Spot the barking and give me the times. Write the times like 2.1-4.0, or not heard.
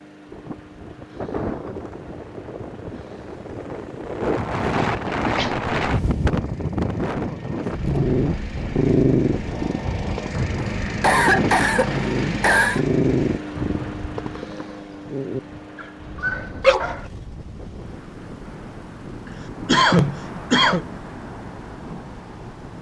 7.8-17.1.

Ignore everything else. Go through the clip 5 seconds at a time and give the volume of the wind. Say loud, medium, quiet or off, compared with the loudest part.
loud, loud, medium, quiet, medium.